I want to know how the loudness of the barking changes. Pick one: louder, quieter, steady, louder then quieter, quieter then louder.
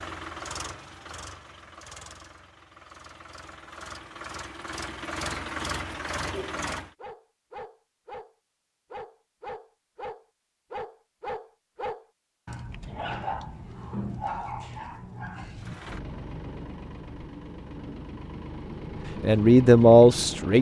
louder.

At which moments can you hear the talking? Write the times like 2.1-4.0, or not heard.
19.2-20.5.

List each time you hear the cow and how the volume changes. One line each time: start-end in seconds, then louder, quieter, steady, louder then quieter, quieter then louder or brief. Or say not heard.
not heard.